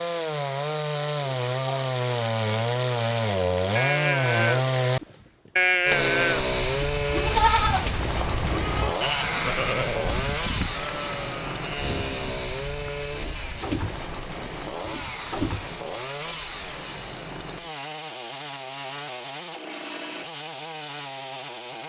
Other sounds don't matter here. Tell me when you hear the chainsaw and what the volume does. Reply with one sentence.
The chainsaw can be heard from 0.0 to 21.8 s, getting quieter.